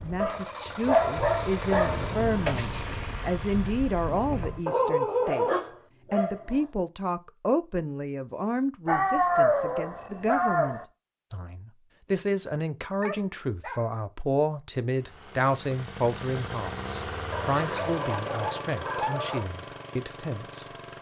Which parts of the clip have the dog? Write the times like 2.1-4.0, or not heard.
0.2-2.0, 4.7-6.6, 8.8-10.8, 13.0-13.8, 17.3-19.5.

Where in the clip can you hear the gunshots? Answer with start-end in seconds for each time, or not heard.
1.1-4.6.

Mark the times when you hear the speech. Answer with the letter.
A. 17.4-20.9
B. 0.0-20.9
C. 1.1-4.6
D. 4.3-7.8
B.